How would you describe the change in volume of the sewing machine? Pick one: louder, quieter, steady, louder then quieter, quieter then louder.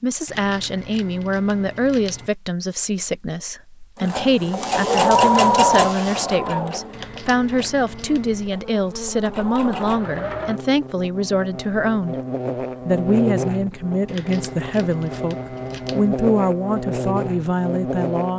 quieter then louder.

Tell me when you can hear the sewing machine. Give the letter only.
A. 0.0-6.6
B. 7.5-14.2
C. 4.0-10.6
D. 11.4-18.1
C.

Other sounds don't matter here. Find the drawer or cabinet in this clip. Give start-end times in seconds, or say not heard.
not heard.